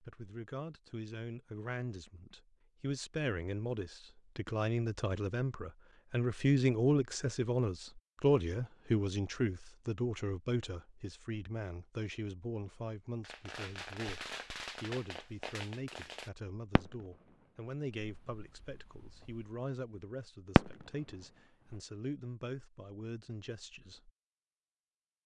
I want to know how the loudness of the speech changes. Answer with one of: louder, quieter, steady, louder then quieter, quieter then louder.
louder then quieter.